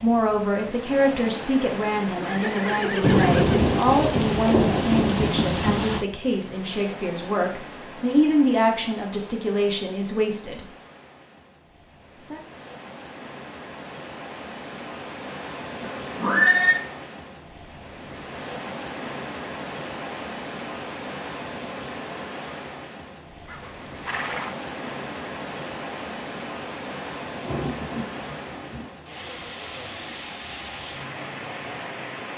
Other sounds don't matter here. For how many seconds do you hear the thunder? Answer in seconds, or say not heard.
5 s.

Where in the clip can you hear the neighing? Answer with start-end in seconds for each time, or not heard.
2.1-3.6, 15.8-16.8, 23.4-24.5.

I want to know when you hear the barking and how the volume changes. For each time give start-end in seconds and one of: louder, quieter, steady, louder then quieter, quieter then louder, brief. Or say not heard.
not heard.